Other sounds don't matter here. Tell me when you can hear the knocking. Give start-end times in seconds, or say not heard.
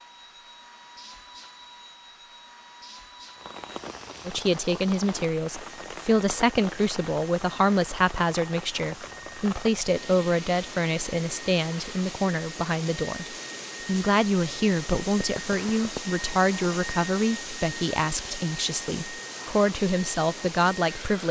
15.2-16.0.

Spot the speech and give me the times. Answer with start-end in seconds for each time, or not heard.
4.2-21.2.